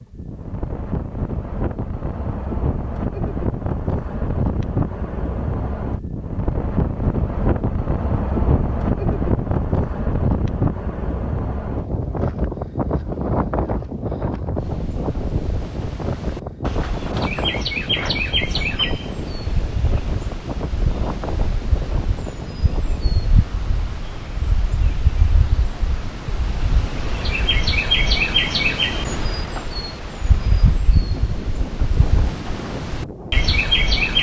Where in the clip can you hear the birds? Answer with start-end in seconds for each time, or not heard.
14.6-34.1.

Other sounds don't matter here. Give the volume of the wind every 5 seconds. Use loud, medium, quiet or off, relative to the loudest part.
loud, loud, loud, medium, medium, quiet, medium.